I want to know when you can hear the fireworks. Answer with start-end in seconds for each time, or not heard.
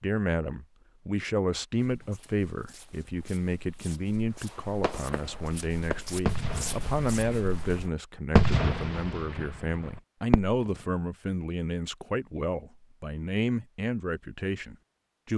4.4-10.8.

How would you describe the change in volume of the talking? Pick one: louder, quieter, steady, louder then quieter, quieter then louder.
steady.